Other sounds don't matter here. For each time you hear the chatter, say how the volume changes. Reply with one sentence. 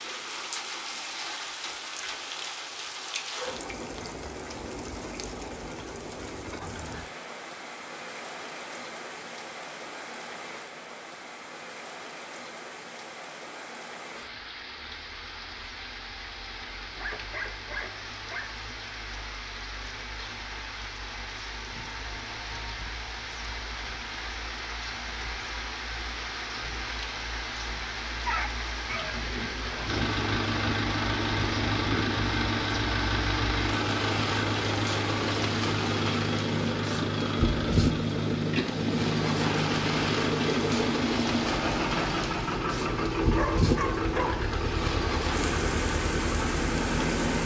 You can't hear the chatter here.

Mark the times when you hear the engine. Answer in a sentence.
The engine can be heard from 29.9 to 47.4 s.